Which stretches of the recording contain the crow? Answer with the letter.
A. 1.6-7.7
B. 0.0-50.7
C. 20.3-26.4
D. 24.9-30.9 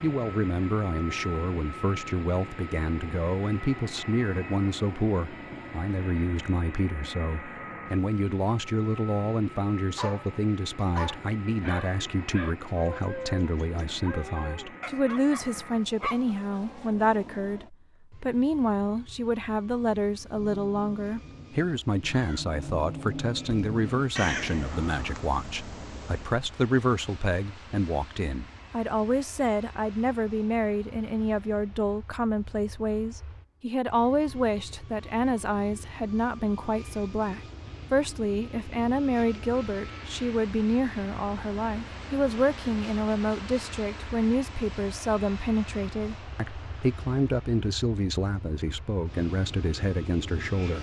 C.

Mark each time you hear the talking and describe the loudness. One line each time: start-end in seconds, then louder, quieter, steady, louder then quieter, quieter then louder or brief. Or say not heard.
0.0-50.7 steady.